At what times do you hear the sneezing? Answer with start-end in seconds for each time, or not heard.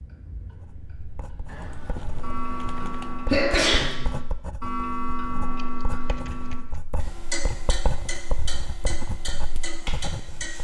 2.8-4.0.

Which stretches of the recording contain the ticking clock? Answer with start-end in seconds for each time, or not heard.
0.0-10.5.